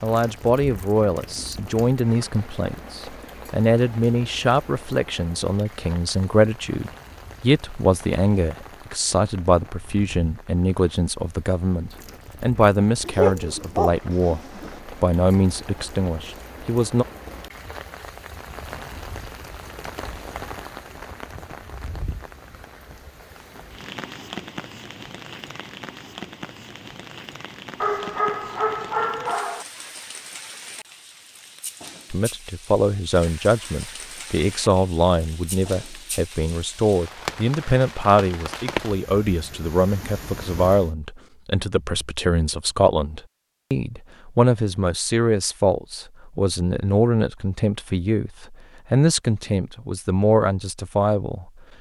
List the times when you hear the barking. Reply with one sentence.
The barking can be heard from 13.1 to 14.8 s and from 27.8 to 29.6 s.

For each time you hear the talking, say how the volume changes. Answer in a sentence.
The talking can be heard from 0.0 to 17.1 s, at a steady volume; and from 32.1 to 51.5 s, at a steady volume.